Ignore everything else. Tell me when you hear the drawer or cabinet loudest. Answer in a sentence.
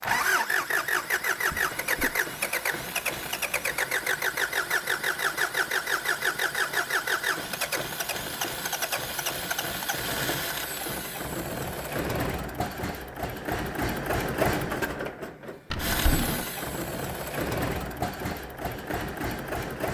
The volume of the drawer or cabinet peaks at 16 seconds.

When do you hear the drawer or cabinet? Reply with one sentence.
The drawer or cabinet can be heard from 1.5 to 2.2 s and from 15.7 to 16.4 s.